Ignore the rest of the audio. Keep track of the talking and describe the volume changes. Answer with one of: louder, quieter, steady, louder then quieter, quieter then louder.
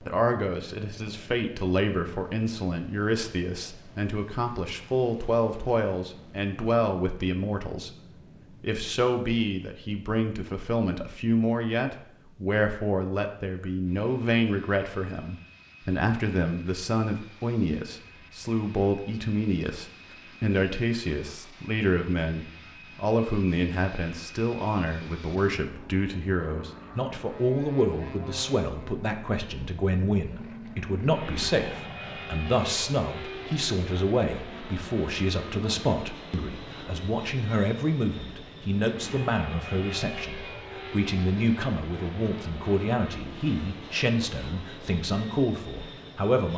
steady.